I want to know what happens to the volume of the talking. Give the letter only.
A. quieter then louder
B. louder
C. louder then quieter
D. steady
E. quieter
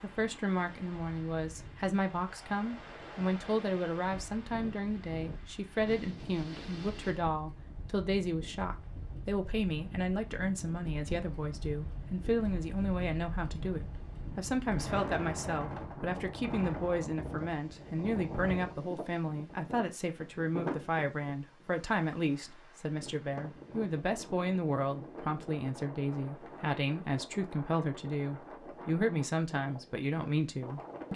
D.